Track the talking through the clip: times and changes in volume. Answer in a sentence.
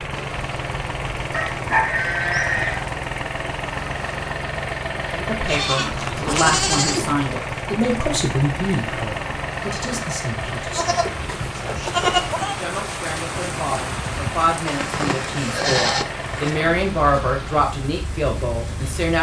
You can hear the talking from 5.1 to 19.1 s, getting quieter then louder.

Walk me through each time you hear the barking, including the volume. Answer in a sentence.
The barking can't be heard in this clip.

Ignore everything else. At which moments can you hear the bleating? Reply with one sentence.
You can hear the bleating from 1.3 to 2.9 s, from 5.5 to 7.2 s, from 10.8 to 12.6 s and from 14.7 to 16.6 s.